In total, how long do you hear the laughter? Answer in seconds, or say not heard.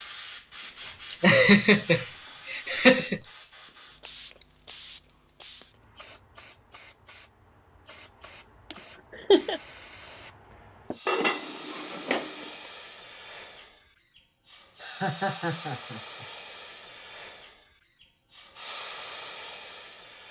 5 s.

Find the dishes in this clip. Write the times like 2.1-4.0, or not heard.
11.1-12.5.